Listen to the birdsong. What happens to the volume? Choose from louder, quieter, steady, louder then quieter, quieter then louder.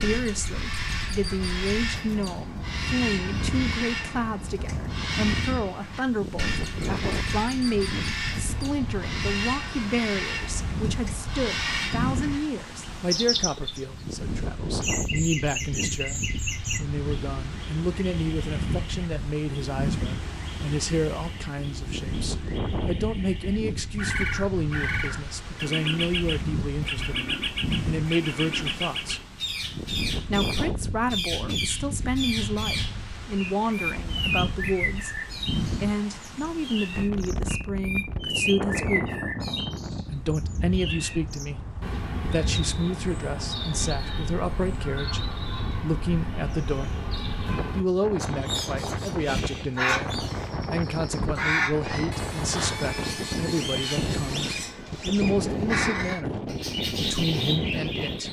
steady.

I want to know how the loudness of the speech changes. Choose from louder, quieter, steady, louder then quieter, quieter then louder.
steady.